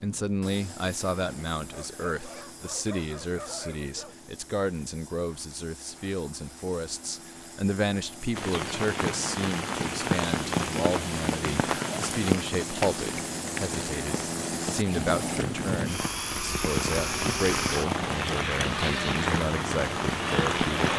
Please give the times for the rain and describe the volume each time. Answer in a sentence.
You can hear the rain from 8.3 to 20.9 s, getting quieter then louder.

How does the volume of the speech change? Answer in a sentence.
The volume of the speech stays about the same.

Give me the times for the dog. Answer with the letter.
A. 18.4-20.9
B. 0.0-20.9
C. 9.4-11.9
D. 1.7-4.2
D.